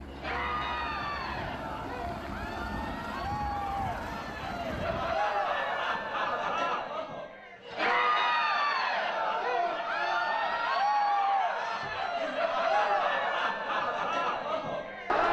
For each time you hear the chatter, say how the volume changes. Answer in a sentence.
You can hear the chatter from 0.1 to 15.2 s, getting louder.